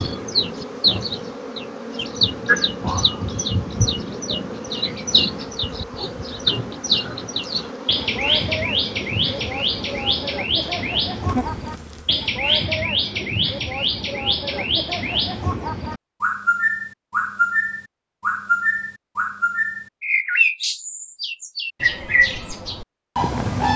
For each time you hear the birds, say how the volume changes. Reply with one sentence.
You can hear the birds from 0.0 to 23.7 s, at a steady volume.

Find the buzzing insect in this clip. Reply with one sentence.
The buzzing insect can be heard from 0.0 to 12.3 s.